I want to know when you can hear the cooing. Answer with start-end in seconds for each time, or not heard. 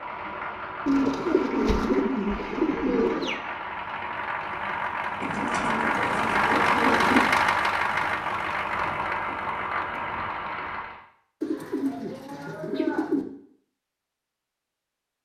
0.8-3.4, 5.2-7.2, 11.4-13.2.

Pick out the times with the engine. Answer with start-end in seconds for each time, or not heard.
0.0-11.0.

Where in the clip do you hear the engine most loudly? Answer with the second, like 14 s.
7 s.